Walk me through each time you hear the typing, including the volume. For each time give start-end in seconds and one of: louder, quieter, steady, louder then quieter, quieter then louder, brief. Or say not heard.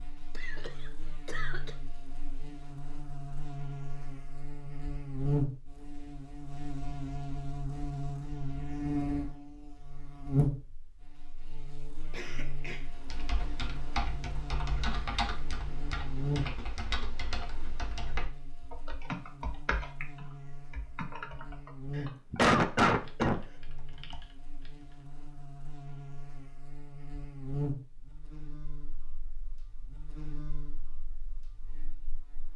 12.8-25.1 quieter.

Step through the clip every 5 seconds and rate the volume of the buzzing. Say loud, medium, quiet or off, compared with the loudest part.
medium, loud, loud, medium, medium, medium, quiet.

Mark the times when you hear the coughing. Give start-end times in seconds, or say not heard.
0.3-1.8, 12.1-12.9, 21.9-23.4.